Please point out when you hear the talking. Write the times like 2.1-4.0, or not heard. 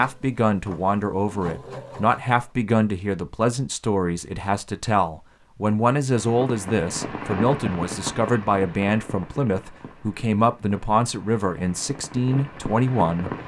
0.0-13.3.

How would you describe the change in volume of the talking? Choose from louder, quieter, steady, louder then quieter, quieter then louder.
steady.